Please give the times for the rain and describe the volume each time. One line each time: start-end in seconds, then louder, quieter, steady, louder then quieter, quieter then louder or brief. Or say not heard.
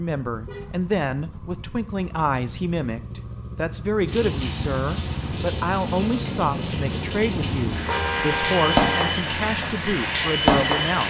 4.0-11.0 louder.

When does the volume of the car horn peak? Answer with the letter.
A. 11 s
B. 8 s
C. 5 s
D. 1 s
B.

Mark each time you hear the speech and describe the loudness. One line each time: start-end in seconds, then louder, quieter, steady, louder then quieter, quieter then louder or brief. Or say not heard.
0.0-11.0 steady.